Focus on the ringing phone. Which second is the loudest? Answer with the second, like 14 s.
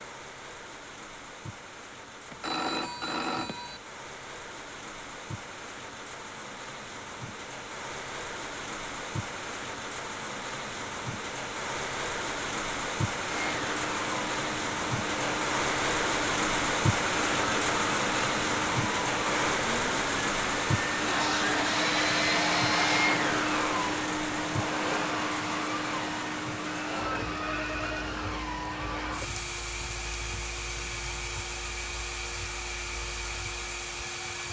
3 s.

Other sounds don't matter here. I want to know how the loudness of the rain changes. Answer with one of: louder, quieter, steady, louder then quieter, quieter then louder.
louder then quieter.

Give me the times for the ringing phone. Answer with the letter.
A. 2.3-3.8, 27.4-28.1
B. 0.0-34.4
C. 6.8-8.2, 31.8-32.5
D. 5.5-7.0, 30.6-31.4
A.